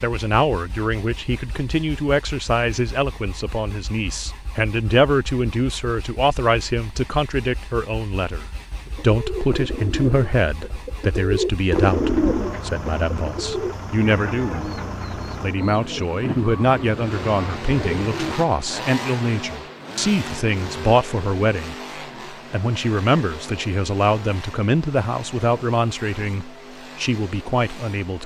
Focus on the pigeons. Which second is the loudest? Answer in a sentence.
The volume of the pigeons peaks at 12 seconds.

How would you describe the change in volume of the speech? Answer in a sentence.
The loudness of the speech stays about the same.